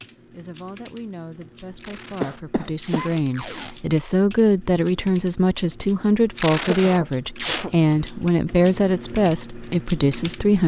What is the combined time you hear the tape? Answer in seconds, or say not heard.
3 s.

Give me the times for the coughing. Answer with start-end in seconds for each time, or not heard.
2.2-3.1, 6.5-7.8.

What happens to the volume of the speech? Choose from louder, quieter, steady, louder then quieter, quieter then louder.
louder.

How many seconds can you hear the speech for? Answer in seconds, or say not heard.
10 s.